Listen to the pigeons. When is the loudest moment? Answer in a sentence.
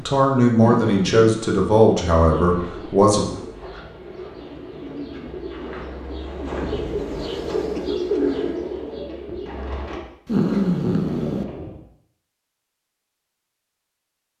The loudest moment of the pigeons is at 8 seconds.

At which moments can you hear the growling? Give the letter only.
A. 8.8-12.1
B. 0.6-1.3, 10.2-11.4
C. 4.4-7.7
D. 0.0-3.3
B.